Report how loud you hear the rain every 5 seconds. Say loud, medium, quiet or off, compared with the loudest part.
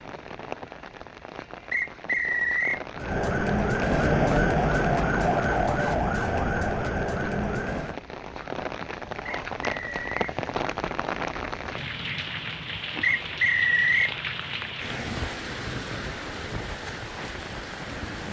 medium, loud, loud, loud.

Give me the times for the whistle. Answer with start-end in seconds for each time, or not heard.
1.7-2.8, 9.2-10.3, 13.0-14.2.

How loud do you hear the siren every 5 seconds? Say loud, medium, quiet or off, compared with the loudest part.
loud, loud, off, off.